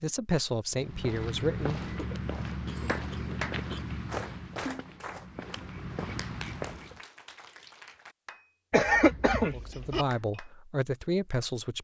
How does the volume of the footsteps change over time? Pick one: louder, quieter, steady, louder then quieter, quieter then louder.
quieter then louder.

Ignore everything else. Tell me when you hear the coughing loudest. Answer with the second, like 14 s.
9 s.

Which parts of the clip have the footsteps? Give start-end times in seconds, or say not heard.
0.7-7.0.